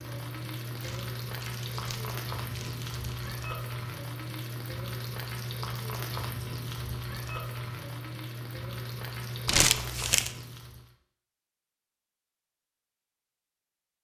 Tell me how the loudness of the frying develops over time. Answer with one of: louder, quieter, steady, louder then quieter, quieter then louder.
steady.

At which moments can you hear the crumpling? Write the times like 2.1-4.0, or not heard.
0.8-3.3, 9.4-10.3.